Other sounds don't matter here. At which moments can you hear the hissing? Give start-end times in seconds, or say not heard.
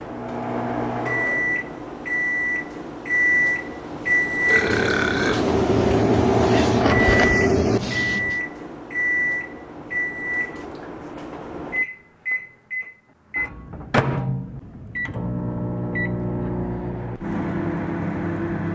4.5-8.4.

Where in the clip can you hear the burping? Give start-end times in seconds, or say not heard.
4.5-5.5.